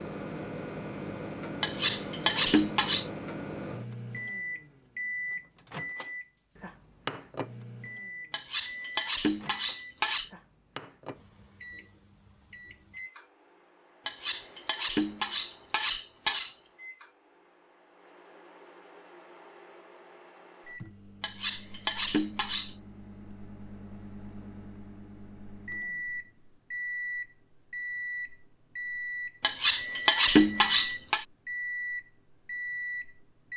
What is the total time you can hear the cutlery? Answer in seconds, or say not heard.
9 s.